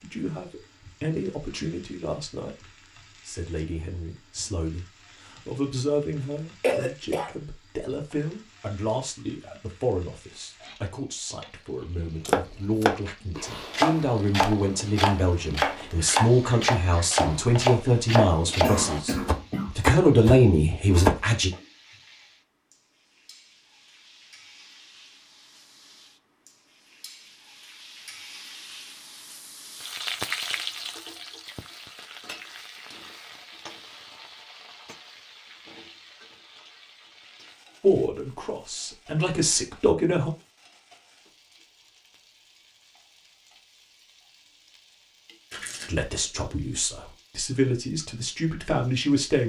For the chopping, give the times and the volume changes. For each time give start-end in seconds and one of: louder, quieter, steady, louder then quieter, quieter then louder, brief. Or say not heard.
12.2-21.2 steady.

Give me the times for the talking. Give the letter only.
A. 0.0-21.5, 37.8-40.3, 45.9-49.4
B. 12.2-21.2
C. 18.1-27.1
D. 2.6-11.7
A.